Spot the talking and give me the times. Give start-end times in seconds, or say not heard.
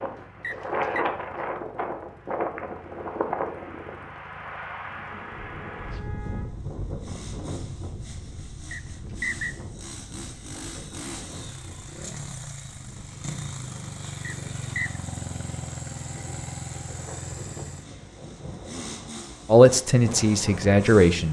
19.5-21.2.